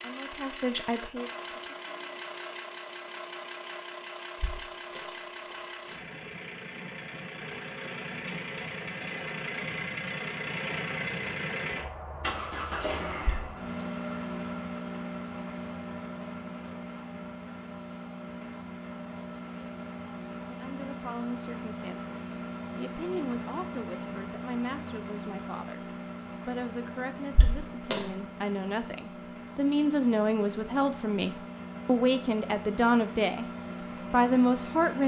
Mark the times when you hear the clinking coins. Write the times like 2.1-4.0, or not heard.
4.3-5.7, 13.2-13.8, 27.4-28.1.